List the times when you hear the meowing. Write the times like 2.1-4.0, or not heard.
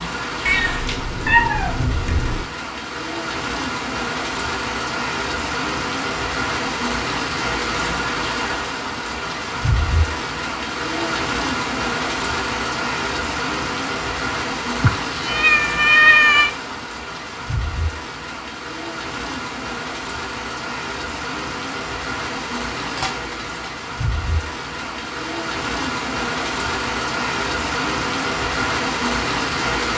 0.5-2.5, 14.8-16.5, 22.8-23.6.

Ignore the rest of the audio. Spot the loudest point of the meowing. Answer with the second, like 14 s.
16 s.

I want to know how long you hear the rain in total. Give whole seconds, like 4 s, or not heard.
30 s.